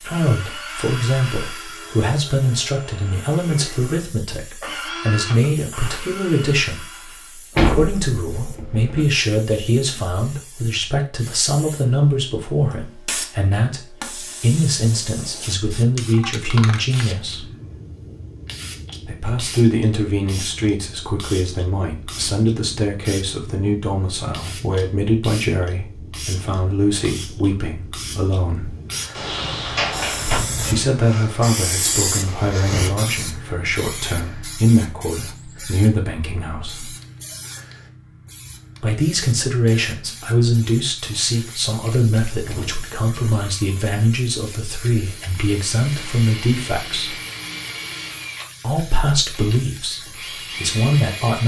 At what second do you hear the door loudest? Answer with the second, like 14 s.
8 s.